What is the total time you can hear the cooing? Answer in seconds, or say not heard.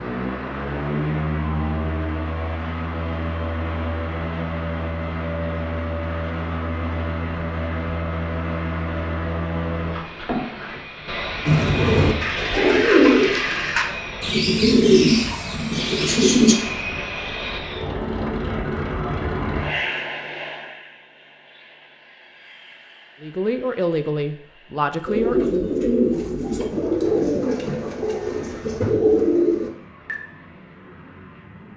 10 s.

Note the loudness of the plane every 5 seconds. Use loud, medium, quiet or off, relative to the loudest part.
loud, loud, loud, loud, quiet, quiet, quiet.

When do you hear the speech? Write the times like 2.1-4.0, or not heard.
23.2-25.4.